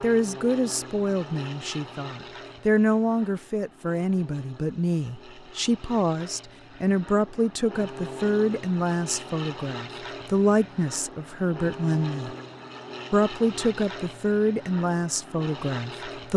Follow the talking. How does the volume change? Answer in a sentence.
The volume of the talking stays about the same.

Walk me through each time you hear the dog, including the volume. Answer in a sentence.
You can't hear the dog here.